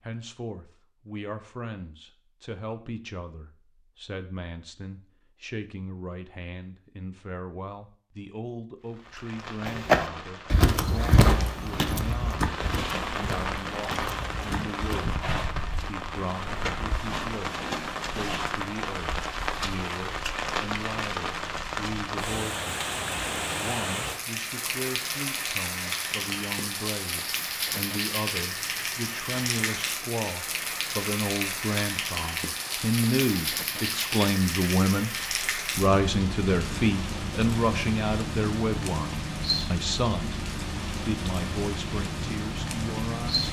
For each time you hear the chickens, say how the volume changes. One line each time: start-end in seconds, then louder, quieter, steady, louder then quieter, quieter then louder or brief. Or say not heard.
not heard.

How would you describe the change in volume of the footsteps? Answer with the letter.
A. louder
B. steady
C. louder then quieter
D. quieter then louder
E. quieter
E.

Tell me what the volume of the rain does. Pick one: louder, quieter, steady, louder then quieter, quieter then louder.
steady.